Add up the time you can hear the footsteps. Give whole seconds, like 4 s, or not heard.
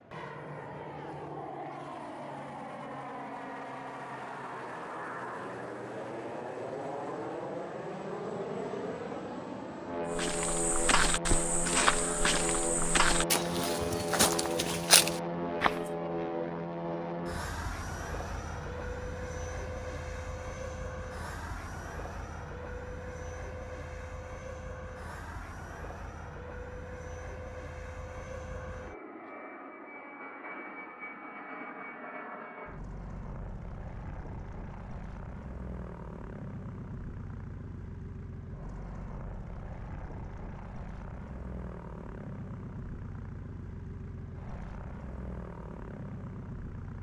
6 s.